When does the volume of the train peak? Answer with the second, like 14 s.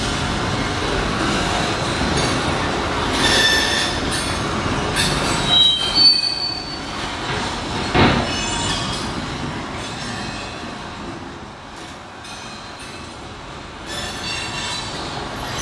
6 s.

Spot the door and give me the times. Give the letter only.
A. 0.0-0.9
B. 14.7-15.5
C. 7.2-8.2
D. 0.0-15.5
C.